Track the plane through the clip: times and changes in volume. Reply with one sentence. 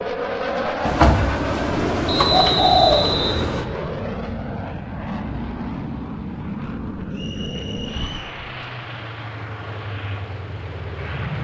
The plane can be heard from 0.0 to 11.3 s, getting quieter.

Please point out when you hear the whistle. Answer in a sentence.
The whistle can be heard from 2.0 to 3.5 s and from 7.1 to 8.3 s.